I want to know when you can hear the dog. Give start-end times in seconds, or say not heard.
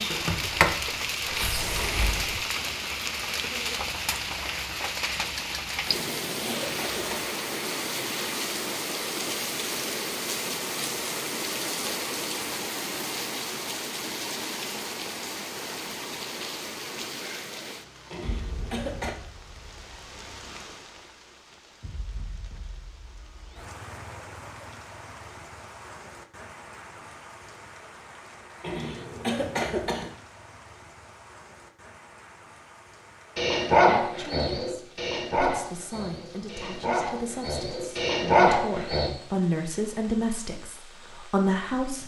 33.4-39.1.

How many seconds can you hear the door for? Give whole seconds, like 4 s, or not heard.
2 s.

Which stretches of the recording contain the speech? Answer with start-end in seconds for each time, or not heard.
33.8-42.0.